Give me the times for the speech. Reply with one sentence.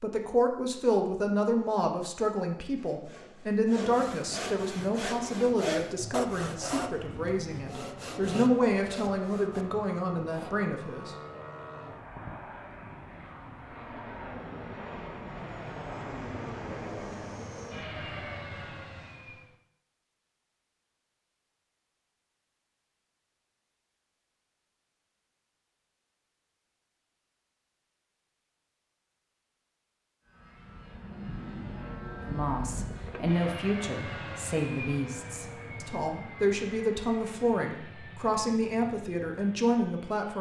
The speech can be heard from 0.0 to 11.2 s and from 32.2 to 40.3 s.